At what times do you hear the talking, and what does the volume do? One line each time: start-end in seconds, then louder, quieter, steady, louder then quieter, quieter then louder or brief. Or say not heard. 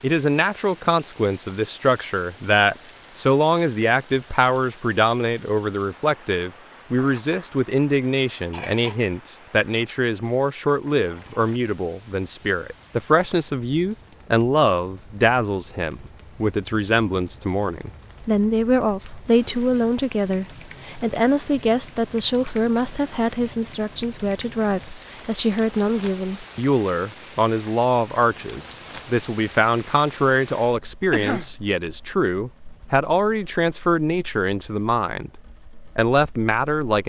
0.0-35.3 steady
36.0-37.0 brief.